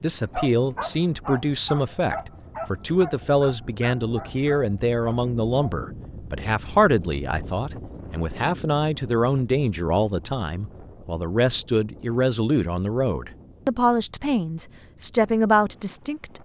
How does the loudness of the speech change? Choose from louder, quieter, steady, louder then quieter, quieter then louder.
steady.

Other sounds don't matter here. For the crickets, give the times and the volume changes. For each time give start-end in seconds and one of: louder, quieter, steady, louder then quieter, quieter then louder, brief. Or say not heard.
not heard.